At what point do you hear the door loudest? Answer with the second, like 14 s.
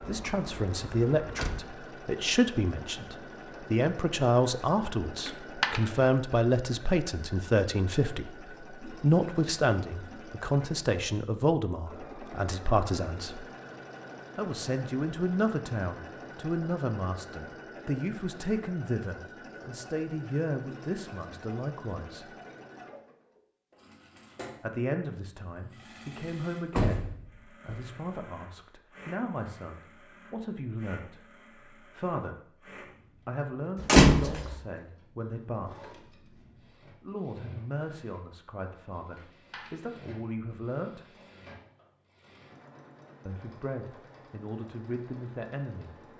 34 s.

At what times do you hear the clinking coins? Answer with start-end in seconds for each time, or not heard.
5.2-6.0, 39.1-40.0.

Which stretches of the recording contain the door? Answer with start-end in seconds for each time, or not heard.
0.0-1.6, 26.7-27.9, 33.9-34.5.